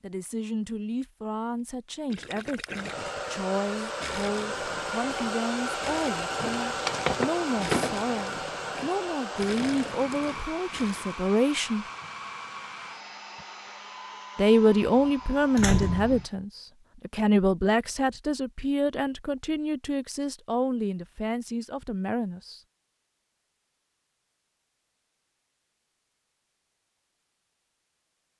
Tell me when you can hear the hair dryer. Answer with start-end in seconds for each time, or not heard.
2.7-16.4.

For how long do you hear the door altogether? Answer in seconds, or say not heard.
3 s.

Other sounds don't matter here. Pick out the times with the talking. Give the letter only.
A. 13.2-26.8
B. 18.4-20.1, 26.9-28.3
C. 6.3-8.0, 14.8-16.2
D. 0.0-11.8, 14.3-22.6
D.